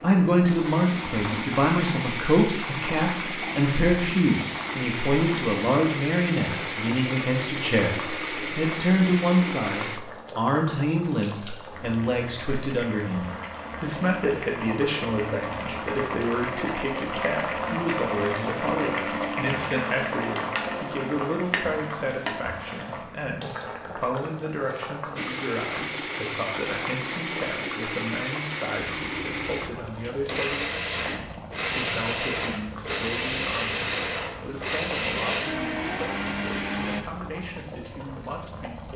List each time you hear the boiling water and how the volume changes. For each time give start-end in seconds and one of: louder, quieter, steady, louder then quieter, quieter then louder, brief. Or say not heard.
0.0-38.9 louder then quieter.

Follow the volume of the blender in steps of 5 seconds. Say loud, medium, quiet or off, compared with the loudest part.
loud, loud, off, off, off, loud, loud, loud.